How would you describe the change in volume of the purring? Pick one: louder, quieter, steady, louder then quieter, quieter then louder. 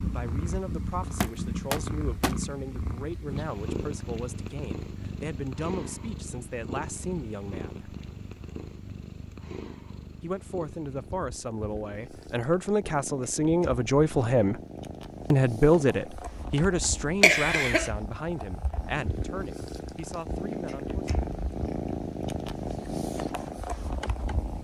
quieter then louder.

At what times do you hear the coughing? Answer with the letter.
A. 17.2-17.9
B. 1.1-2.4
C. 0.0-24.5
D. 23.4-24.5
A.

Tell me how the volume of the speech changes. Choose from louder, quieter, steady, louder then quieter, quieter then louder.
louder then quieter.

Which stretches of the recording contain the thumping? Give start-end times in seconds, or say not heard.
1.1-2.4.